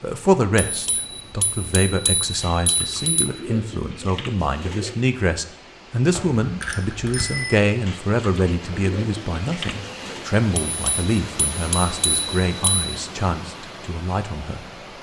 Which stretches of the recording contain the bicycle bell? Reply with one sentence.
You can hear the bicycle bell from 0.6 to 3.4 s, from 6.1 to 7.6 s and from 10.5 to 12.9 s.